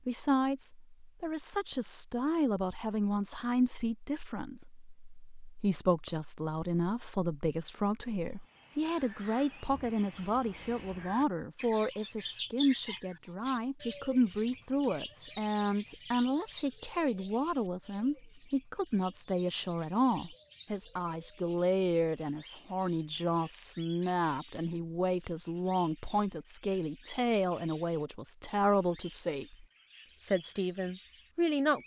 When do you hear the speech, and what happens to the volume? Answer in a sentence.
You can hear the speech from 0.1 to 31.8 s, at a steady volume.